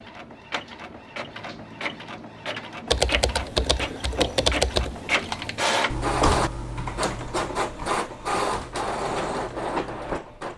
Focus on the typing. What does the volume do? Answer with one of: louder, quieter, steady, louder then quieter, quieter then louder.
quieter.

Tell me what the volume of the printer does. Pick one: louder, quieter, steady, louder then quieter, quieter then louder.
louder.